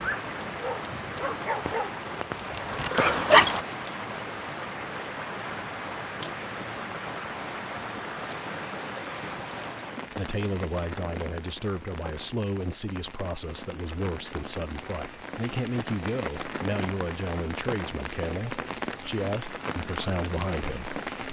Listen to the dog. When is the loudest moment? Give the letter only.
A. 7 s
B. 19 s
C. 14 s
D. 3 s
D.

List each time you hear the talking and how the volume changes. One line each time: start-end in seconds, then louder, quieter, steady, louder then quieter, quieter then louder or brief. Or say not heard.
10.1-21.2 steady.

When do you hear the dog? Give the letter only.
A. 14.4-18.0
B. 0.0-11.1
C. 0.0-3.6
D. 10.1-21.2
C.